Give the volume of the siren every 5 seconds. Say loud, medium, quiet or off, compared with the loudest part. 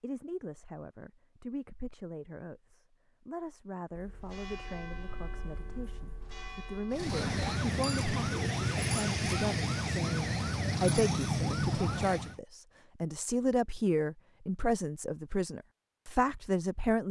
off, loud, loud, off.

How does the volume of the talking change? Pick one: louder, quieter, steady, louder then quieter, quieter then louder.
louder.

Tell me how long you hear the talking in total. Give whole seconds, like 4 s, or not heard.
17 s.